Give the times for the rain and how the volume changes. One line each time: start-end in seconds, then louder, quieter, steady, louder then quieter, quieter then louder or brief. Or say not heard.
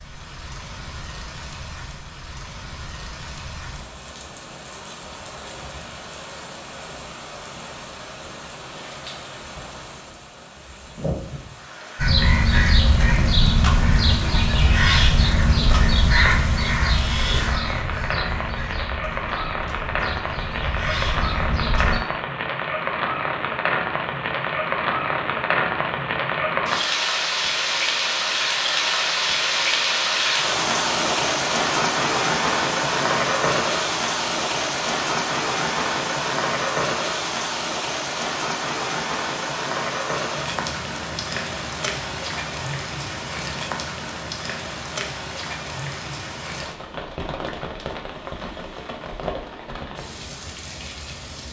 0.0-51.4 louder then quieter.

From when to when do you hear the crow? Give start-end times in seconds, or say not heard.
11.9-22.0.